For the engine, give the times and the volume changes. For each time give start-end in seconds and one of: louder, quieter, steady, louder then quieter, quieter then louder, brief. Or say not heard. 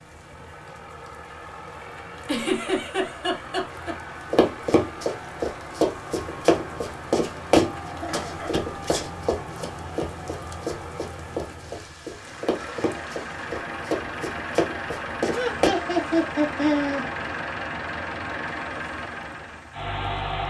0.0-20.4 louder.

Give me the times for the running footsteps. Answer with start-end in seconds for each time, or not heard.
4.3-15.7.